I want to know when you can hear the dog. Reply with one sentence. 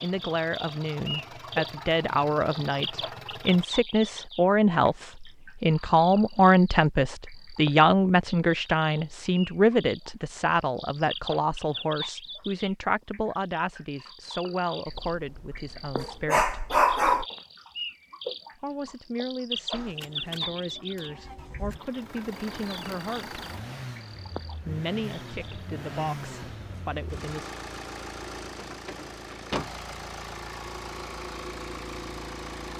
You can hear the dog from 14.8 to 17.2 s.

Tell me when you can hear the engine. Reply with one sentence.
You can hear the engine from 0.0 to 3.6 s and from 19.7 to 32.7 s.